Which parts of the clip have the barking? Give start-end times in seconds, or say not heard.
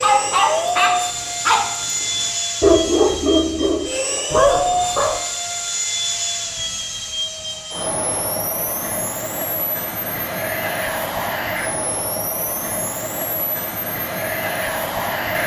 0.0-5.2.